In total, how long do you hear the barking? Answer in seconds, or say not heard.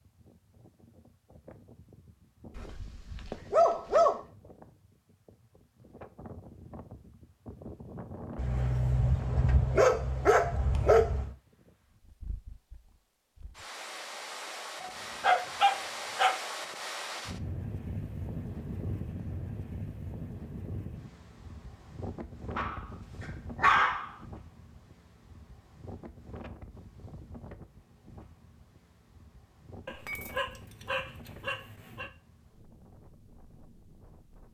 10 s.